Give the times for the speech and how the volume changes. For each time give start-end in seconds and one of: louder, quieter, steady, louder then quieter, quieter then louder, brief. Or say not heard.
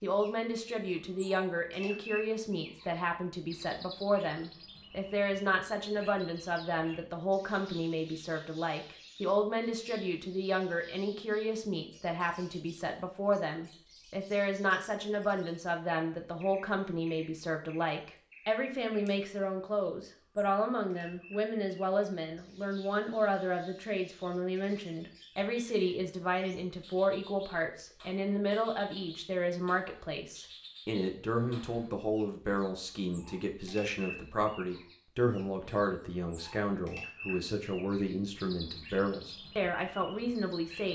0.0-40.9 steady.